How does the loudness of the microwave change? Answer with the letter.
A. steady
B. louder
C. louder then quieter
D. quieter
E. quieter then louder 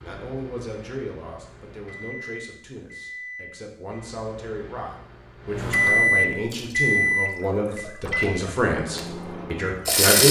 C.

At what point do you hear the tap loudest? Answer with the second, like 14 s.
10 s.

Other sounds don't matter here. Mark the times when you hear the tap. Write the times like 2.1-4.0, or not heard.
6.5-10.2.